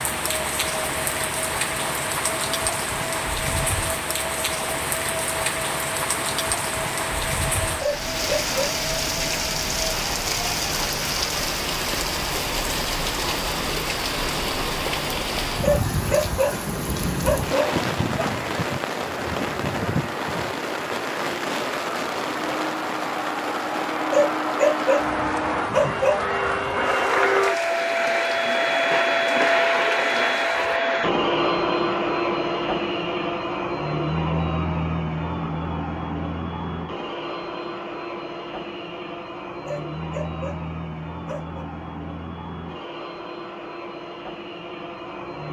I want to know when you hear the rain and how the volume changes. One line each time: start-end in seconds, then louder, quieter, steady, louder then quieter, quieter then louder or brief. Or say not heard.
0.0-30.8 quieter.